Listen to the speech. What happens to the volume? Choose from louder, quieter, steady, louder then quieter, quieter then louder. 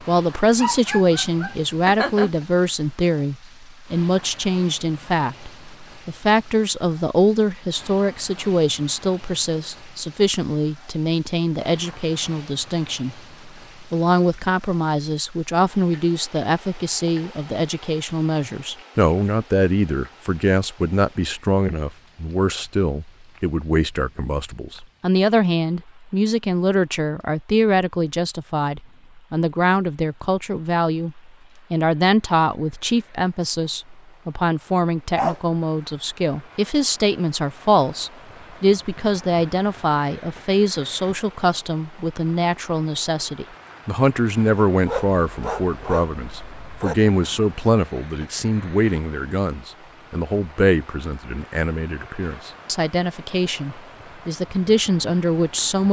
steady.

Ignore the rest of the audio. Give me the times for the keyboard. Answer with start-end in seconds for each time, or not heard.
not heard.